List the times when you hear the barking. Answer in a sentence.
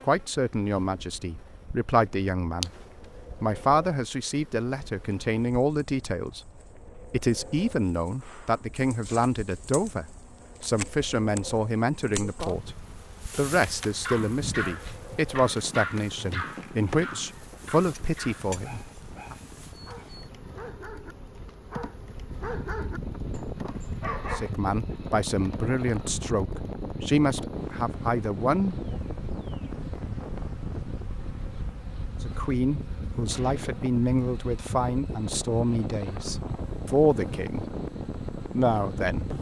You can hear the barking from 13.9 to 24.6 s.